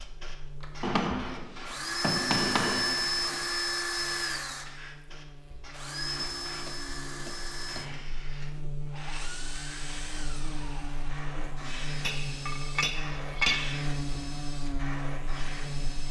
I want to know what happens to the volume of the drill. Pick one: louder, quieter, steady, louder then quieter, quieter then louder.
quieter.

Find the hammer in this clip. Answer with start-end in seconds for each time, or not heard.
0.8-3.5, 6.2-8.2, 12.0-13.8.